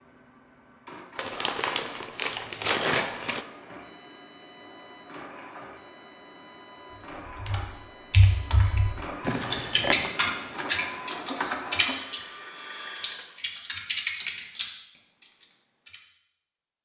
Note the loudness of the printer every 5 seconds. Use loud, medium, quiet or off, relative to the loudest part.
medium, medium, loud, off.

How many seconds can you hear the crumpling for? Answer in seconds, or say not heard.
3 s.